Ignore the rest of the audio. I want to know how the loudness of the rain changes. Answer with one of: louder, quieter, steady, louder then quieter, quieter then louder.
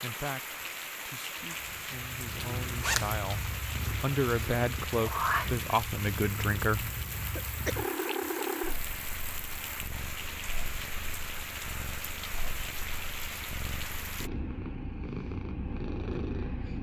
steady.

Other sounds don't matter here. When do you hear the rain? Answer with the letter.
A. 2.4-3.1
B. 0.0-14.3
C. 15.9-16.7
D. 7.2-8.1
B.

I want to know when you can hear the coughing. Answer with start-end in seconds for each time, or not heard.
7.2-8.1.